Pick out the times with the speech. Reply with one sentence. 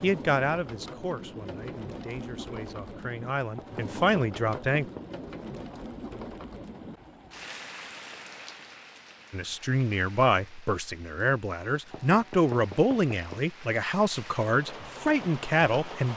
You can hear the speech from 0.0 to 4.8 s and from 9.3 to 16.1 s.